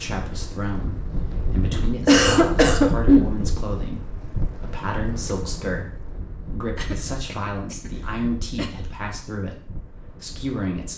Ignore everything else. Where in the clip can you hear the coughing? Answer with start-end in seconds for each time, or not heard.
2.0-3.3, 6.8-8.7.